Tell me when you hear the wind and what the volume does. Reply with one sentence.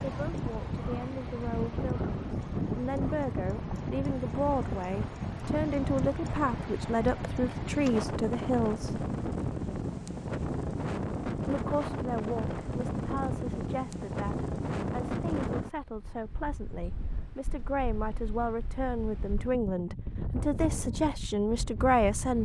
You can hear the wind from 0.0 to 22.3 s, getting quieter.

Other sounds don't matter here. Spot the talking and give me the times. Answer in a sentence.
The talking can be heard from 0.0 to 9.1 s and from 11.4 to 22.3 s.